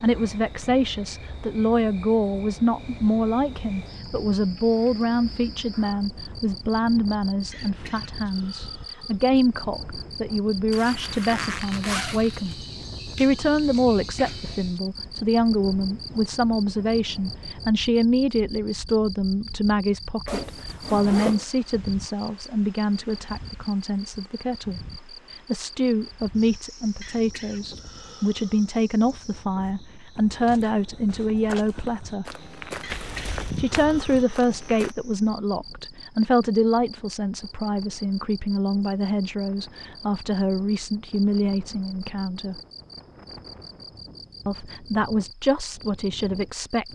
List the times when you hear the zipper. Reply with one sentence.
You can hear the zipper from 10.7 to 12.4 s, from 20.2 to 21.4 s and from 32.9 to 33.6 s.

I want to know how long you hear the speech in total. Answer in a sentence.
The speech can be heard for 43 seconds in total.